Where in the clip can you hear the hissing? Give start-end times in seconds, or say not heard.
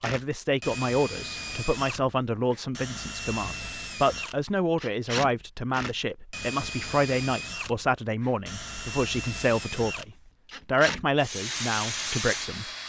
11.2-12.6.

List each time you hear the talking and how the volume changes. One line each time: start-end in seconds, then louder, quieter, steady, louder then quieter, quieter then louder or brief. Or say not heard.
0.0-12.7 steady.